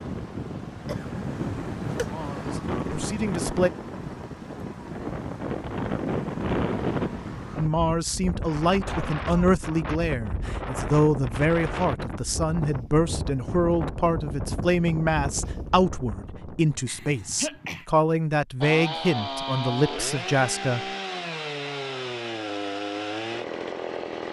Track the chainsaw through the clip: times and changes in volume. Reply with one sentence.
You can hear the chainsaw from 18.6 to 24.2 s, at a steady volume.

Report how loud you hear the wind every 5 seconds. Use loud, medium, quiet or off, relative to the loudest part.
loud, loud, loud, medium, off.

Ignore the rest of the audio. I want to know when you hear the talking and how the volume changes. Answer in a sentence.
You can hear the talking briefly from 2.0 to 3.7 s; and from 7.5 to 20.8 s, at a steady volume.